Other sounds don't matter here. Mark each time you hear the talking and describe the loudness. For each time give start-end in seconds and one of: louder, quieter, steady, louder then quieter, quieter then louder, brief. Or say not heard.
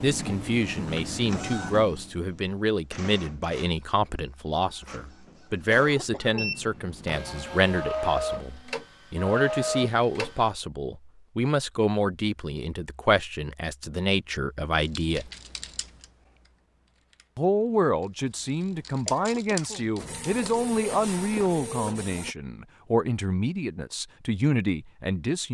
0.0-15.3 steady
17.4-25.4 steady.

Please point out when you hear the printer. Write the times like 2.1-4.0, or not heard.
0.0-10.5, 19.9-22.4.